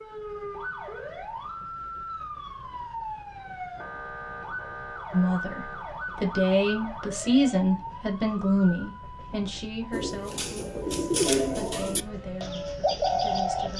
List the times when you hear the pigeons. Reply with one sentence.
The pigeons can be heard from 9.9 to 13.7 s.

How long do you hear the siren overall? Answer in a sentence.
The siren can be heard for 14 seconds in total.